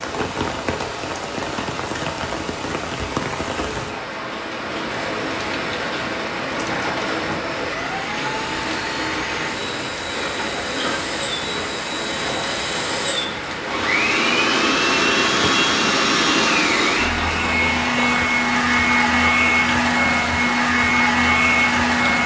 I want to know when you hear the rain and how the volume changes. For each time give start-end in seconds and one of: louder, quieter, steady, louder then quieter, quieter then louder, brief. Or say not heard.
0.0-22.2 steady.